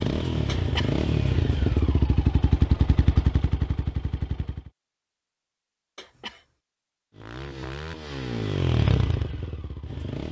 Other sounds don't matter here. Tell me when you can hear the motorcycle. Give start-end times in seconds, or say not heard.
0.0-4.7, 7.1-10.2.